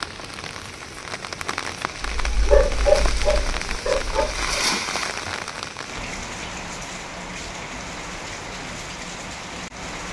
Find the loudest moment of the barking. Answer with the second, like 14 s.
3 s.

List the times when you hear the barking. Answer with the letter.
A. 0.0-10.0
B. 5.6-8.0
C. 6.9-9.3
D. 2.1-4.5
D.